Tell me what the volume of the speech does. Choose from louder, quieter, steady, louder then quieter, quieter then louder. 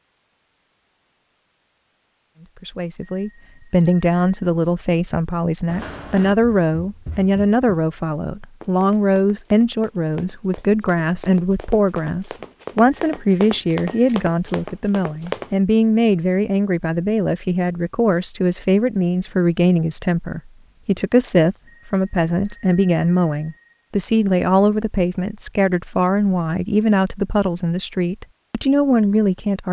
steady.